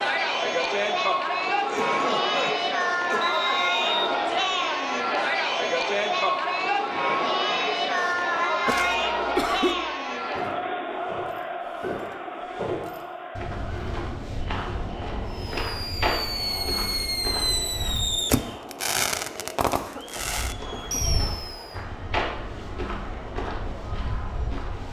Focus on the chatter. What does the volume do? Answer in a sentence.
The volume of the chatter goes down.